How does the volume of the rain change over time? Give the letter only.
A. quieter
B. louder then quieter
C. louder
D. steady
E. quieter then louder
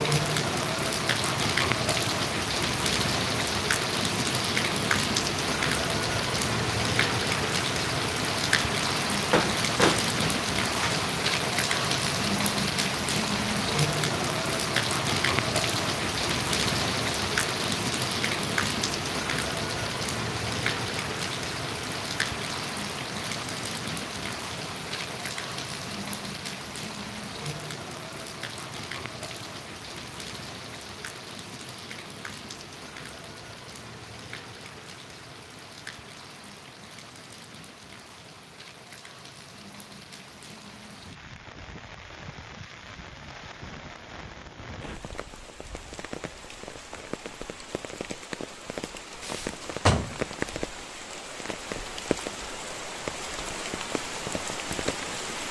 E.